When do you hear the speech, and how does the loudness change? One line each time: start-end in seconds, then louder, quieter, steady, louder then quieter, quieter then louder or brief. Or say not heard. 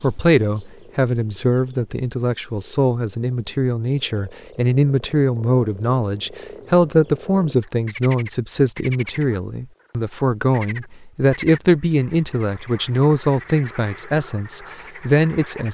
0.0-15.6 steady.